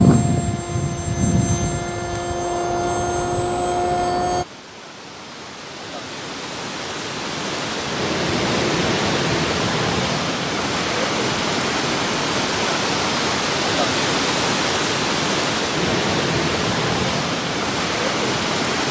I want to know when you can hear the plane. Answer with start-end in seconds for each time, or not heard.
0.0-4.5.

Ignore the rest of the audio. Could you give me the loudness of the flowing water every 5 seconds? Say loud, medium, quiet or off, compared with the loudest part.
quiet, loud, loud, loud.